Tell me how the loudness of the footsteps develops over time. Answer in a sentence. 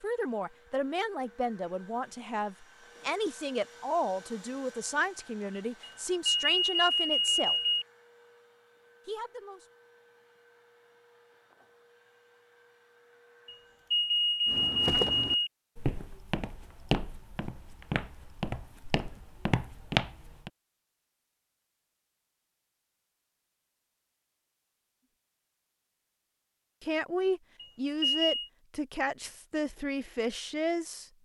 The volume of the footsteps goes down, then up.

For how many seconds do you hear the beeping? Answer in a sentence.
The beeping can be heard for 5 seconds in total.